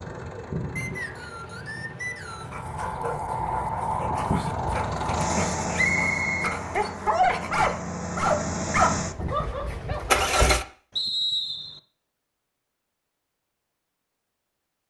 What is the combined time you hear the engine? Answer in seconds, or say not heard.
11 s.